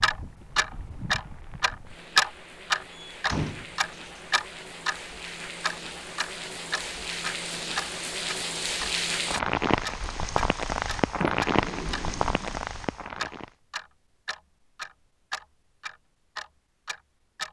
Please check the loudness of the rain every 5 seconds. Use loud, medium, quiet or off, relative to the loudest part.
quiet, loud, loud, off.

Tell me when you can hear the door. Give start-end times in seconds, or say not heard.
3.1-4.2, 11.2-12.6.